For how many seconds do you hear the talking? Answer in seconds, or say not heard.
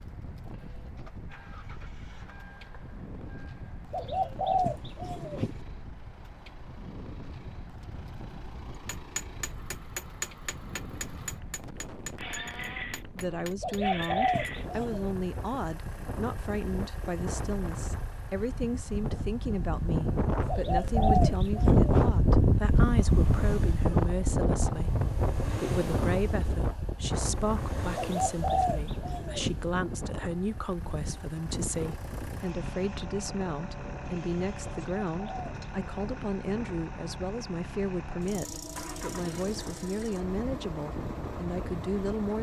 29 s.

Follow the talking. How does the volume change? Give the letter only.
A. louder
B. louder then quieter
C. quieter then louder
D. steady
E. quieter
D.